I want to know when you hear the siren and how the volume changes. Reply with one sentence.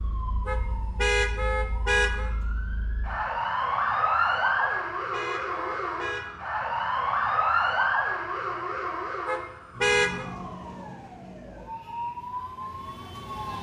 The siren can be heard from 0.0 to 13.5 s, getting louder then quieter.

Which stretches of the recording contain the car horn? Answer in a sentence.
You can hear the car horn from 0.5 to 2.3 s, from 4.5 to 6.2 s and from 9.2 to 10.2 s.